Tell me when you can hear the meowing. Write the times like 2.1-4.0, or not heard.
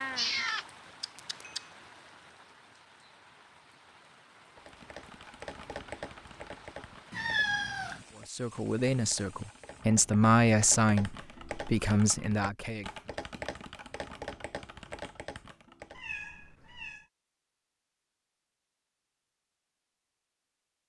0.1-1.6, 7.1-8.1, 15.9-17.1.